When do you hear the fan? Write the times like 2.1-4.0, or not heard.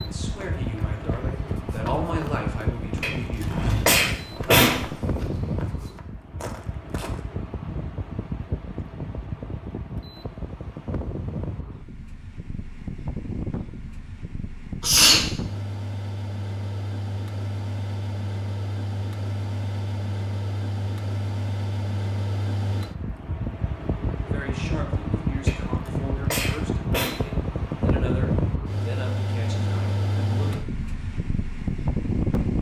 0.0-32.5.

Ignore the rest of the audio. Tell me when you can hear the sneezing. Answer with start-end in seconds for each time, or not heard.
3.0-4.8, 14.8-15.2, 25.4-27.1.